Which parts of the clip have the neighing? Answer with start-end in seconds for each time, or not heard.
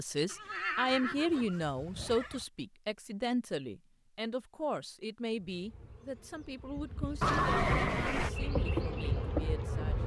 0.2-2.5, 7.2-8.3.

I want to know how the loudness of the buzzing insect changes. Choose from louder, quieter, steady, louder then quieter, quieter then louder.
louder.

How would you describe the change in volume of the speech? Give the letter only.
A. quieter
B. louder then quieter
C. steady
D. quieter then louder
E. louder
A.